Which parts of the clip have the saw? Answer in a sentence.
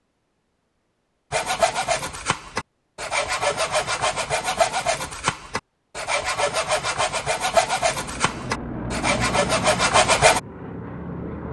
You can hear the saw from 1.3 to 10.4 s.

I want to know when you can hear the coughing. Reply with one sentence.
You can't hear the coughing here.